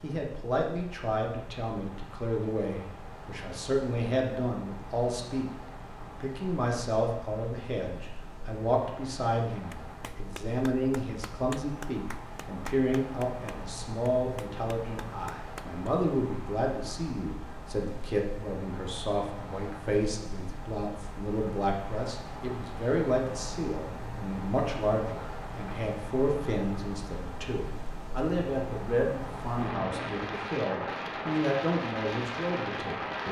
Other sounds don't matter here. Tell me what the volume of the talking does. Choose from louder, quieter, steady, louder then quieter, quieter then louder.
steady.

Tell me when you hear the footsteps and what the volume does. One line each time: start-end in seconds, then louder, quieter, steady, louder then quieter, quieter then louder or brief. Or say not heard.
not heard.